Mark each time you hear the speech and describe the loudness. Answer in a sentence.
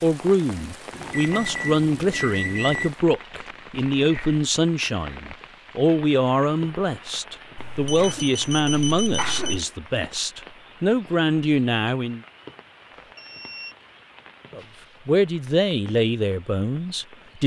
The speech can be heard from 0.0 to 12.2 s, at a steady volume; and briefly from 14.6 to 17.4 s.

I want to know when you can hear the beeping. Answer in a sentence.
The beeping can be heard from 0.9 to 2.9 s, from 7.5 to 9.6 s and from 12.9 to 13.8 s.